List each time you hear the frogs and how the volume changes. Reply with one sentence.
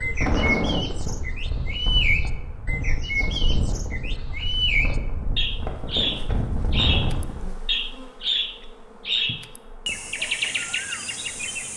You can't hear the frogs here.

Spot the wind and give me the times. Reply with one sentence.
You can hear the wind from 0.0 to 7.5 s.